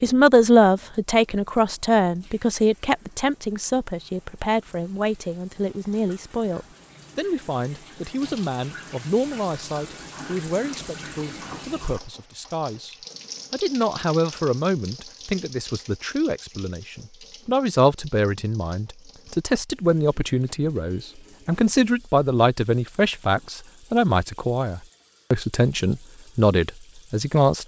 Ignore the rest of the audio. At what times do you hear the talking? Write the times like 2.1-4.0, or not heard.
0.0-27.6.